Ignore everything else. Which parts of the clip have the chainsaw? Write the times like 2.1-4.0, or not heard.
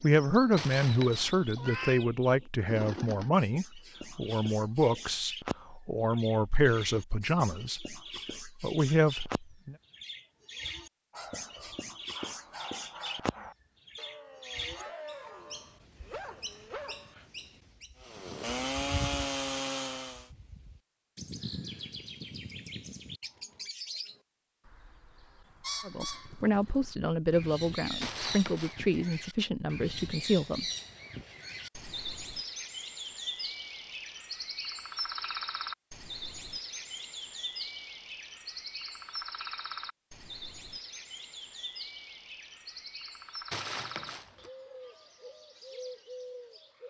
17.9-20.3.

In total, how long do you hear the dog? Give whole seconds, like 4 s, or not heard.
6 s.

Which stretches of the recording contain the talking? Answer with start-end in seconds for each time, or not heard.
0.0-9.8, 25.9-30.6.